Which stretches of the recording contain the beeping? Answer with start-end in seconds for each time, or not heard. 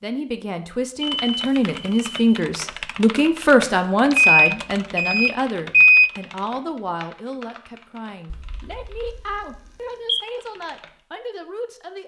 1.1-2.4, 4.1-6.1, 8.3-10.2.